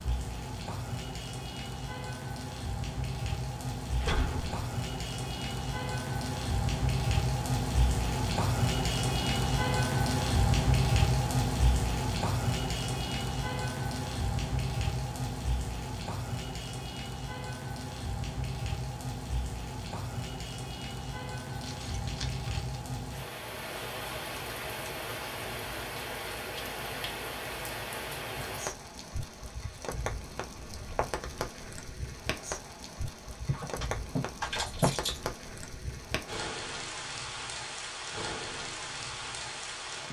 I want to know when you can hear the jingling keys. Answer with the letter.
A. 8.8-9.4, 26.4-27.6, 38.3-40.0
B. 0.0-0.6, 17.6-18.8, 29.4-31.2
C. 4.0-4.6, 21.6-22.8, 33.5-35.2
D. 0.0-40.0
C.